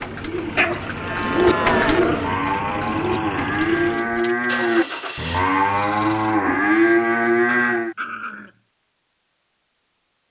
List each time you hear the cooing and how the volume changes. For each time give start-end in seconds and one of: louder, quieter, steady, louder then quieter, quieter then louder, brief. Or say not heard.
0.0-4.2 louder then quieter.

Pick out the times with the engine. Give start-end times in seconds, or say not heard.
0.0-6.5.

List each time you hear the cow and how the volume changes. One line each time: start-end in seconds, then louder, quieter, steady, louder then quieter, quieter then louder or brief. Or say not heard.
0.9-8.0 louder.